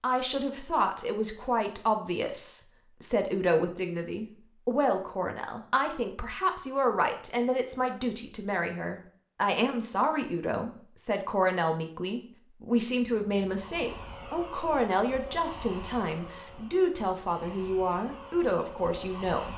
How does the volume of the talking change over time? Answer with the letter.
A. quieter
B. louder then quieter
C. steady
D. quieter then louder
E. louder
C.